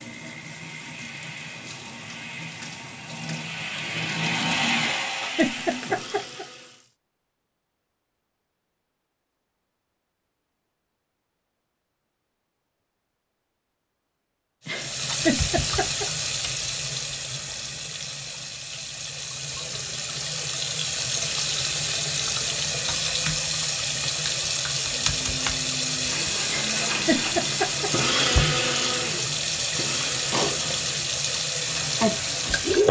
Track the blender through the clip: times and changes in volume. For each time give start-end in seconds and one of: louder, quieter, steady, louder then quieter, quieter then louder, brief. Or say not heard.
0.0-6.8 louder then quieter
25.1-32.8 louder then quieter.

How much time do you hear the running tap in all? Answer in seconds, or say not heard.
25 s.